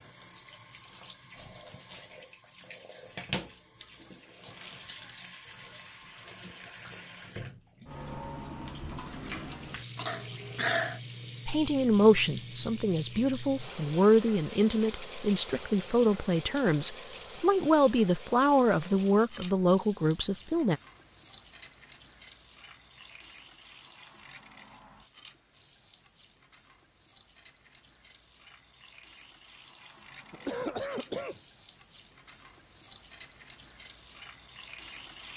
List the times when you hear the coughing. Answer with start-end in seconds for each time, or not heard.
9.9-11.0, 30.3-31.4.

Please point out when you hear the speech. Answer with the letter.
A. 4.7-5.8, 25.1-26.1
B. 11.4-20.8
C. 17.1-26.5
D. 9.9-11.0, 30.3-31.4
B.